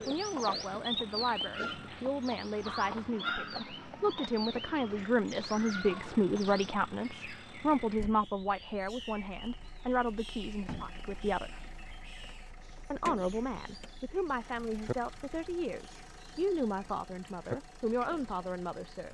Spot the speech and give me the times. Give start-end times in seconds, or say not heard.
0.1-11.6, 12.9-19.0.